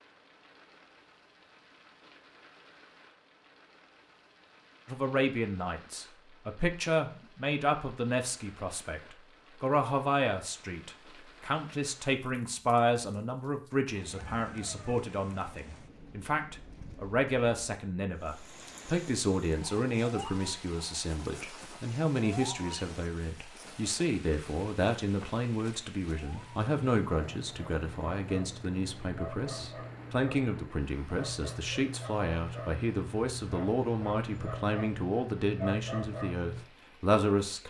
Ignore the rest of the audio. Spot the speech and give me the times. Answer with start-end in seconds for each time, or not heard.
4.8-37.6.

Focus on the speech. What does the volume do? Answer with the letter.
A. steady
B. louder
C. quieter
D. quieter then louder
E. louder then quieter
A.